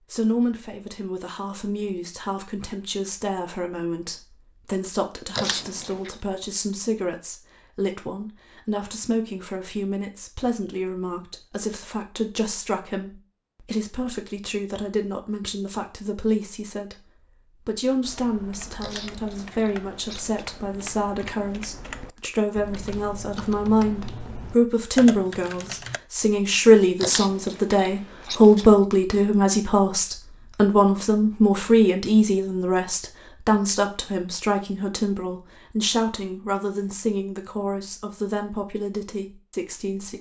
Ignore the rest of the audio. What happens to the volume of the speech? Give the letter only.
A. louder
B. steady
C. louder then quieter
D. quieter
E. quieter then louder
C.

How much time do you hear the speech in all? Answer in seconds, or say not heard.
40 s.